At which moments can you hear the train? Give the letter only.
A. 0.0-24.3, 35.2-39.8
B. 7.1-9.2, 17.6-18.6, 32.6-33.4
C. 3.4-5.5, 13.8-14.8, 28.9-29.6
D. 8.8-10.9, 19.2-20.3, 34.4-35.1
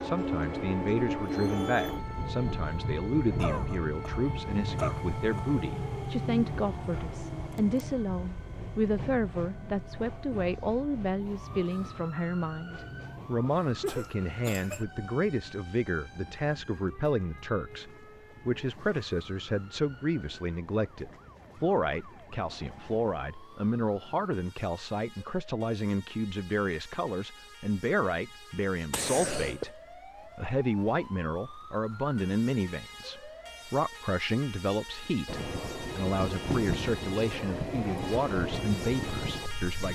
A.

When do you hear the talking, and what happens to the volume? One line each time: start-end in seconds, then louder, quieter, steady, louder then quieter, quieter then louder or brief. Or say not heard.
0.0-39.8 steady.